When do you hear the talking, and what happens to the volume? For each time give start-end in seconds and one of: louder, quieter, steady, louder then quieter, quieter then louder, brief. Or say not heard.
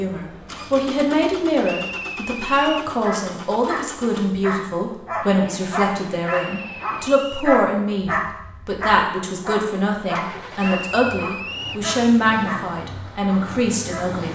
0.0-14.3 steady.